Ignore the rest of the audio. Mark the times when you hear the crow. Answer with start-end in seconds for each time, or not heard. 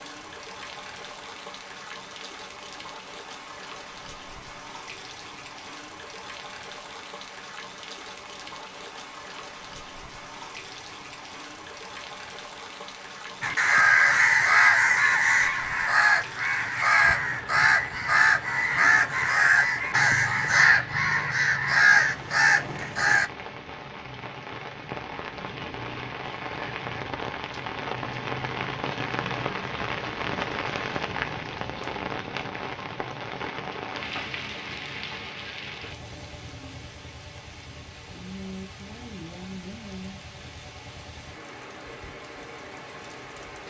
13.4-23.3.